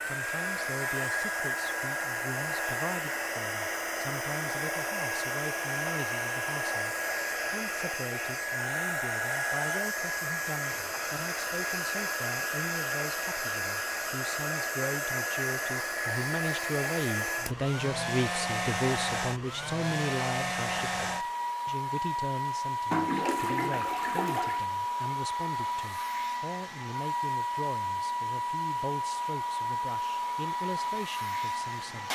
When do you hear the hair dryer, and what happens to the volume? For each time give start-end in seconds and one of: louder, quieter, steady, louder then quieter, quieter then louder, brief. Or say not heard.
0.0-32.0 steady.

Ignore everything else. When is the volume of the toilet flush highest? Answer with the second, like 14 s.
23 s.